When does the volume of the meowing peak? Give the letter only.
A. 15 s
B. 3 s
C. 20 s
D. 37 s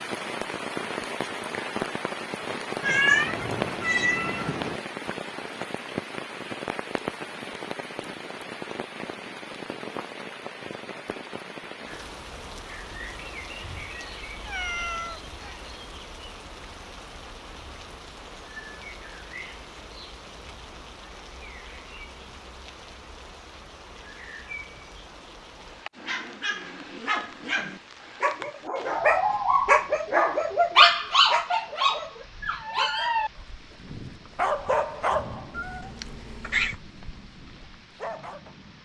B.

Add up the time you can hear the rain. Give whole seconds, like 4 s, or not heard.
39 s.